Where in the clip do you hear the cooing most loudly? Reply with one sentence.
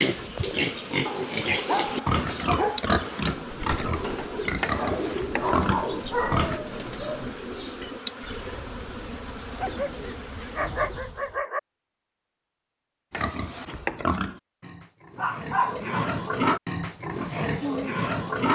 The volume of the cooing peaks at 5 seconds.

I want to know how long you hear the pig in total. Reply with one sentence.
The pig can be heard for 12 seconds in total.